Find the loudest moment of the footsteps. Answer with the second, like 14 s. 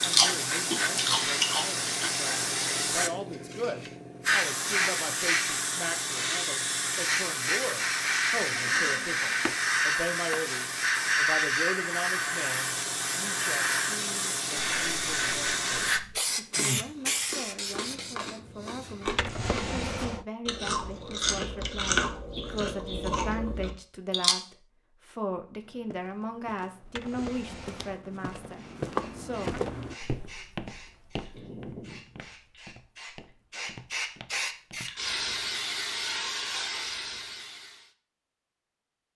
29 s.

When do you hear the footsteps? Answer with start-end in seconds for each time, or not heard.
25.6-35.0.